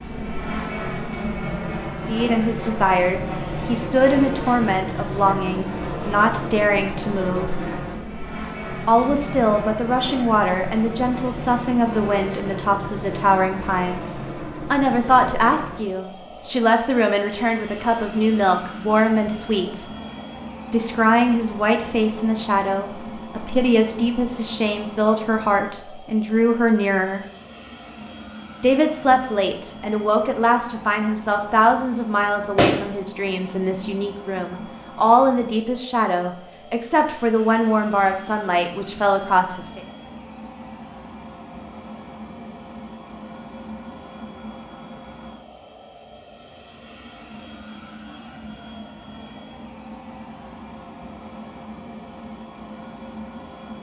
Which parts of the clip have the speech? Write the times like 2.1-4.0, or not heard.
2.0-7.5, 8.8-19.9, 20.7-27.2, 28.6-39.8.